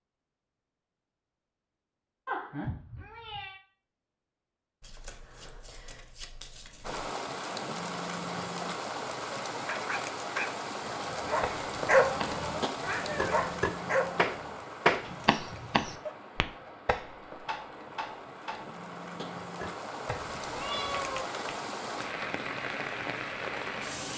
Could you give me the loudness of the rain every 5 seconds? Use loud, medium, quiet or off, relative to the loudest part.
off, loud, loud, medium, loud.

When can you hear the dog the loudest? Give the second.
12 s.